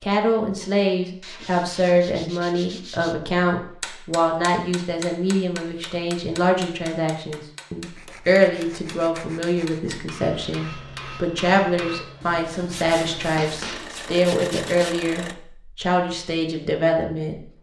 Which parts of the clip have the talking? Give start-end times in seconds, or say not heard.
0.0-17.4.